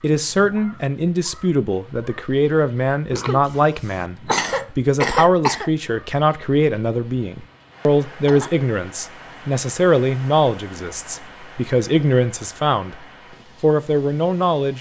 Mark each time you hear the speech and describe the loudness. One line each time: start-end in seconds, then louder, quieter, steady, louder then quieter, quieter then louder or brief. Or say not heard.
0.0-12.9 steady
13.6-14.7 brief.